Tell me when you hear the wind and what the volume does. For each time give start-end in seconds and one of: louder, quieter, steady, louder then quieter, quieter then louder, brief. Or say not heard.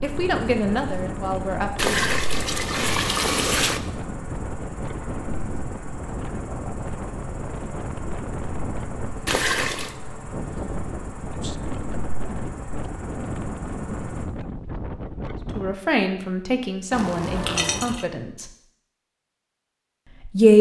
0.0-15.8 steady.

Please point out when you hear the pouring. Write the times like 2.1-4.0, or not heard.
1.8-3.8, 9.2-9.9, 16.9-18.1.